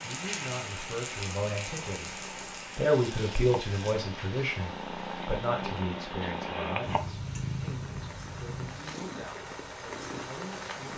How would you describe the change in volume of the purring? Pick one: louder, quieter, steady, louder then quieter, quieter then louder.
louder then quieter.